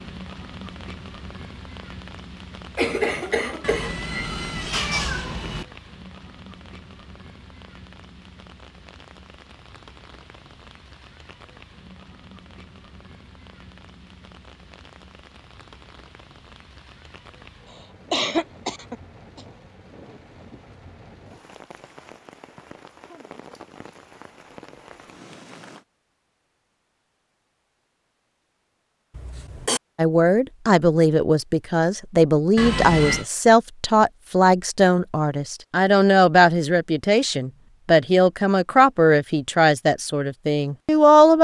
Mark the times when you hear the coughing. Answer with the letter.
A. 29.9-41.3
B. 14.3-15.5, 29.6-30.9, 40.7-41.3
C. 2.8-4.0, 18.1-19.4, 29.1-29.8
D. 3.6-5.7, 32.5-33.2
C.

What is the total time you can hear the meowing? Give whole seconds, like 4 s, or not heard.
3 s.